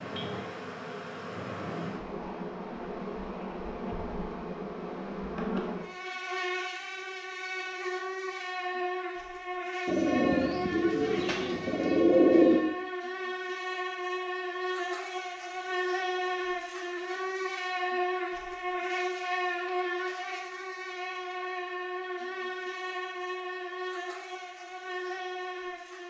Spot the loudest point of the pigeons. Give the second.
12 s.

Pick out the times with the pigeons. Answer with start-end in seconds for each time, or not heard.
9.8-12.8.